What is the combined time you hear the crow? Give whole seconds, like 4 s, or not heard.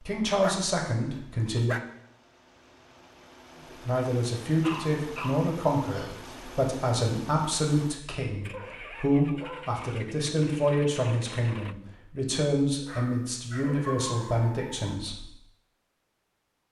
not heard.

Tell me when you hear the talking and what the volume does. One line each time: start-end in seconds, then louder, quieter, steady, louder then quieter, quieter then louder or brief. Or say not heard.
0.0-1.8 brief
3.7-15.3 steady.